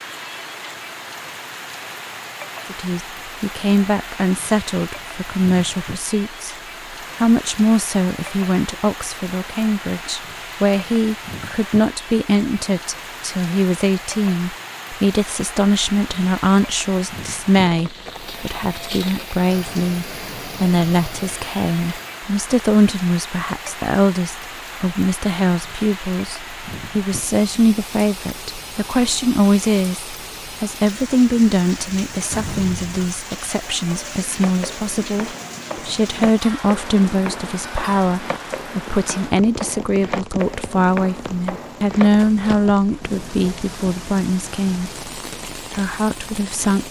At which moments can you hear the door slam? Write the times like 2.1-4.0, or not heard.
32.3-33.2.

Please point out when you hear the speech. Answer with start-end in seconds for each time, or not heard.
2.7-6.5, 7.2-46.8.